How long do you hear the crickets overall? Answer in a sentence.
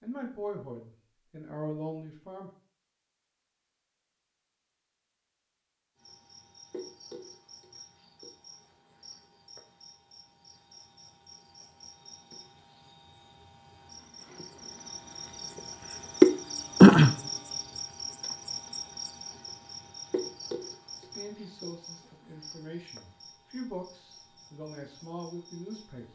The crickets can be heard for 20 seconds in total.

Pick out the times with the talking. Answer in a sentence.
The talking can be heard from 0.0 to 2.5 s and from 20.9 to 26.0 s.